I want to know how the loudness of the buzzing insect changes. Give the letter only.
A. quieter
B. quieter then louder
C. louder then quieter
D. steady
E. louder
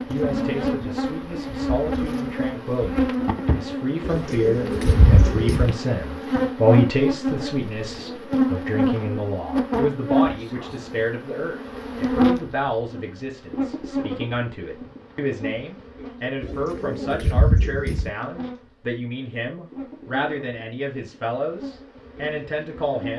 A.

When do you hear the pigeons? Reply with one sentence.
The pigeons can be heard from 4.0 to 5.8 s and from 16.4 to 18.1 s.